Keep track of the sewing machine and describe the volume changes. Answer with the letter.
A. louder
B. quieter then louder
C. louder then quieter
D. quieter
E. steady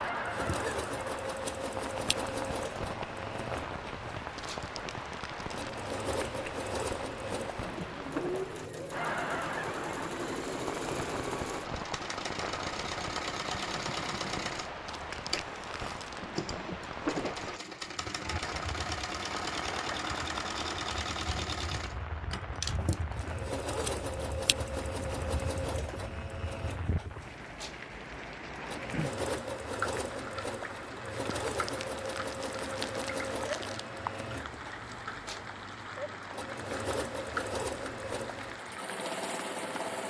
E.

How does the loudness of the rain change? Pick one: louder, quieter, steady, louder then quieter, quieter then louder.
steady.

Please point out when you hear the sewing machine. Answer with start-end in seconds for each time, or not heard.
0.0-40.0.